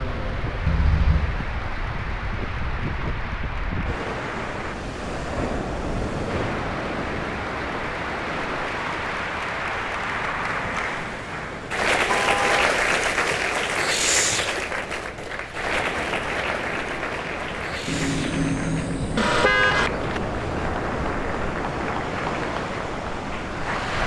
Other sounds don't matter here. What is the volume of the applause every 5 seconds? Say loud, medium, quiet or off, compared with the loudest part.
medium, medium, loud, medium, medium.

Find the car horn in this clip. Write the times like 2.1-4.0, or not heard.
0.7-1.4, 12.1-12.7, 17.9-19.9.